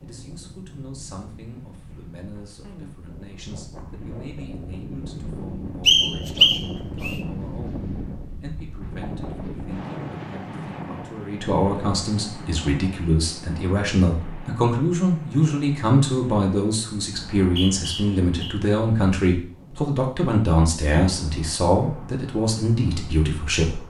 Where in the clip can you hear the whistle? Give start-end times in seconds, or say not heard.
5.8-7.2, 17.1-18.6.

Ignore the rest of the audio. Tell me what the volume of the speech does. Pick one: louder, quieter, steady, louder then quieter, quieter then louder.
louder.